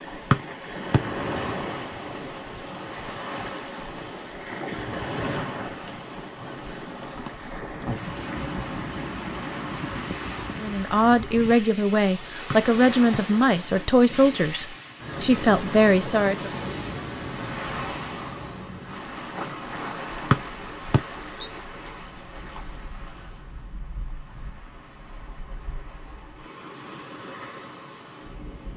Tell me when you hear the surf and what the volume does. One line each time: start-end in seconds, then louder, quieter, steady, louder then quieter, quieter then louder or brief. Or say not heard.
0.0-28.7 quieter.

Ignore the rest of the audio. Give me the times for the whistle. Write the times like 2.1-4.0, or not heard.
0.3-1.0, 12.5-13.2, 20.3-21.5.